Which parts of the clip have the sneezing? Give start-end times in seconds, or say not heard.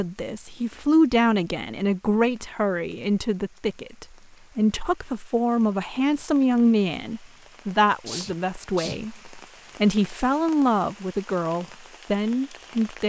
8.1-9.0.